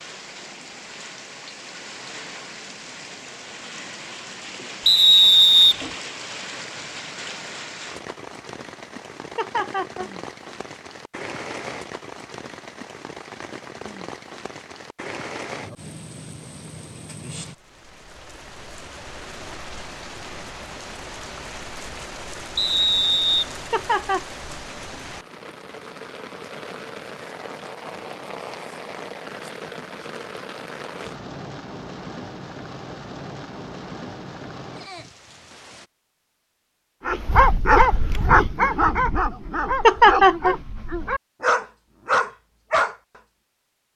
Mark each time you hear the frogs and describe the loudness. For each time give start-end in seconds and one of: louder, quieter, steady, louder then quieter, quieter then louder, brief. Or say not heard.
not heard.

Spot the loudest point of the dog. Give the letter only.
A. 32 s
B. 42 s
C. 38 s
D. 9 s
C.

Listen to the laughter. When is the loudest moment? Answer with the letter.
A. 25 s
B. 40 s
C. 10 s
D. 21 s
B.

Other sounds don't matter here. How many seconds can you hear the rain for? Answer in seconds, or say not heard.
36 s.